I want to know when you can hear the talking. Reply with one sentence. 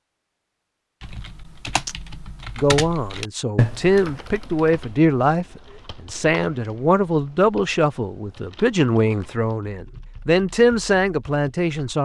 You can hear the talking from 2.5 to 11.9 s.